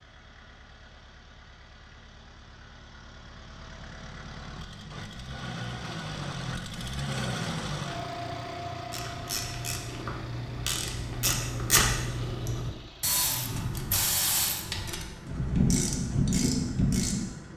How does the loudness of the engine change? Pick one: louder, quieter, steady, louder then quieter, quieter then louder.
louder then quieter.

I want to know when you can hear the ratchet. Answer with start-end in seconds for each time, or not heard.
8.9-17.2.